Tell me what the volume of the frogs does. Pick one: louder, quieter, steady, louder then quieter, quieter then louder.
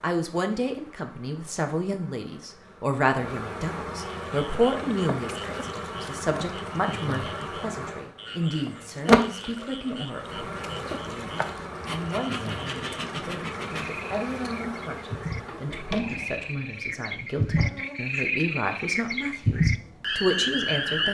louder.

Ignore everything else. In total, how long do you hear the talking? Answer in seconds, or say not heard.
21 s.